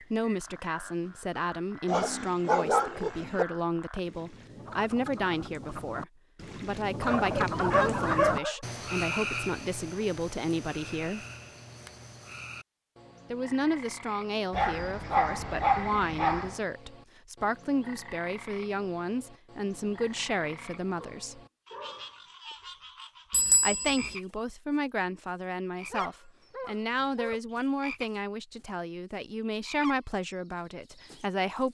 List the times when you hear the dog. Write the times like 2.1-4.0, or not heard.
1.9-3.5, 7.0-8.6, 14.5-16.6, 20.9-22.2, 25.9-27.4.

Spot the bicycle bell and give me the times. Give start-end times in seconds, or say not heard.
23.3-24.1.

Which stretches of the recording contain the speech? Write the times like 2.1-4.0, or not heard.
0.0-11.2, 13.3-21.4, 23.6-31.6.